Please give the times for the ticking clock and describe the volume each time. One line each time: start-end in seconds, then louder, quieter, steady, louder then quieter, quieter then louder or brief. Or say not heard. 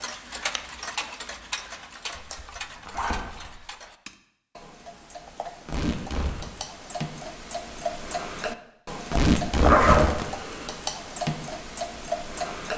0.0-12.7 quieter then louder.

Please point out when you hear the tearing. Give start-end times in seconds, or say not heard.
1.7-2.4, 5.7-6.5, 9.1-10.3.